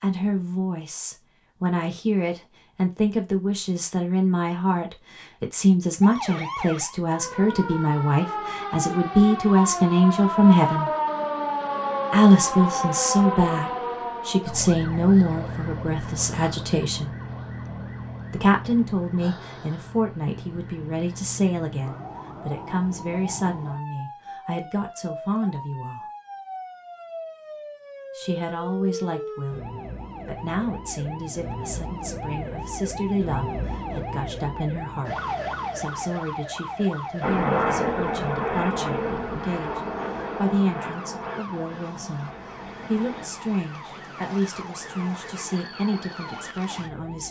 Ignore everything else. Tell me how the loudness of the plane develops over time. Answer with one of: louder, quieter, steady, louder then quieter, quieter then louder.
quieter.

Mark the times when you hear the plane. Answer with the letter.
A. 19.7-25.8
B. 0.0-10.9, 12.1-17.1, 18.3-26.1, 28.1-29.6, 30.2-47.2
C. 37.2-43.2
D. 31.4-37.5
C.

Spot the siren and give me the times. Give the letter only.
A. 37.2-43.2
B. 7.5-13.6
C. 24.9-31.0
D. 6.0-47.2
D.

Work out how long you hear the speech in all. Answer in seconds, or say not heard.
42 s.